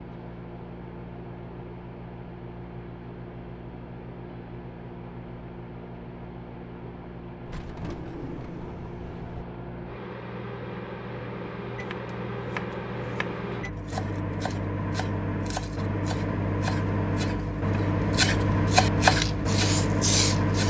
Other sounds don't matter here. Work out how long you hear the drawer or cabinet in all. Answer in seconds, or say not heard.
2 s.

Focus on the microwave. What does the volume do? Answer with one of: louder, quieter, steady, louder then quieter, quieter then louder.
louder.